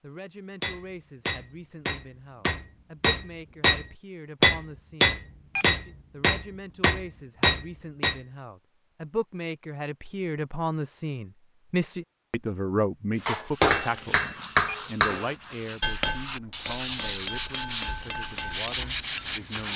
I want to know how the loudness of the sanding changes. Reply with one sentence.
The volume of the sanding goes up.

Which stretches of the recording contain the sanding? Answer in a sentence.
The sanding can be heard from 13.1 to 19.7 s.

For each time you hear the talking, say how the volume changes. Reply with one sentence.
The talking can be heard from 0.0 to 19.7 s, getting louder then quieter.